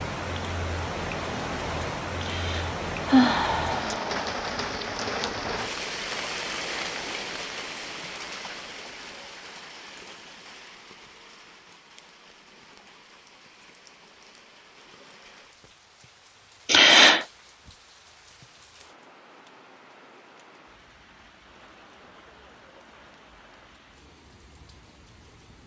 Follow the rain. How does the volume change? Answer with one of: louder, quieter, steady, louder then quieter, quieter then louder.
quieter.